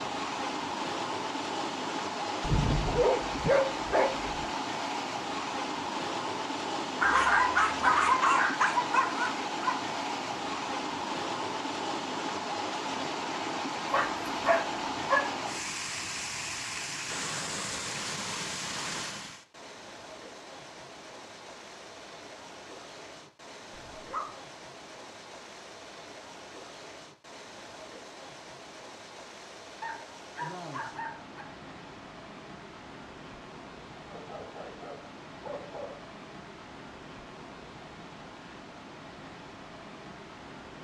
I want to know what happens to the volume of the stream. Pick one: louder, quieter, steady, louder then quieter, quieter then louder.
quieter.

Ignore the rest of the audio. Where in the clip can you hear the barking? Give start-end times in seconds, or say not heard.
2.4-4.5, 7.0-9.8, 13.9-15.3, 23.7-24.4, 29.8-31.4, 34.1-36.0.